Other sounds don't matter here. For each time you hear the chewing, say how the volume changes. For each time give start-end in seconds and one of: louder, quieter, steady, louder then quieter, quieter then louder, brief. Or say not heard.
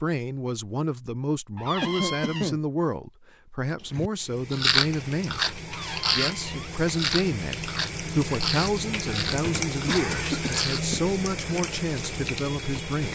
4.0-10.8 quieter.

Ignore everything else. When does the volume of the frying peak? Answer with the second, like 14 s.
10 s.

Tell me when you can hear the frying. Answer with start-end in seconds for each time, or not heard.
4.2-13.0.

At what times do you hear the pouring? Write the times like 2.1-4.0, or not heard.
not heard.